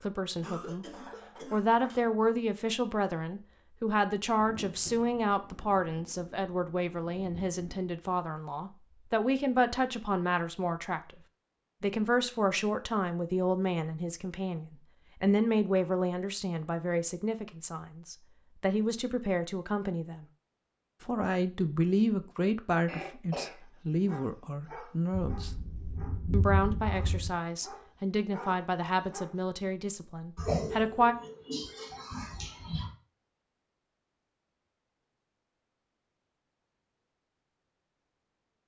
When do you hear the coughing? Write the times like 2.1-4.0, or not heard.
0.4-2.1, 22.9-23.6, 30.4-32.9.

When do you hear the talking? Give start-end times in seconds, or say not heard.
0.0-0.8, 1.5-11.2, 11.8-20.2, 21.0-25.5, 26.3-31.1.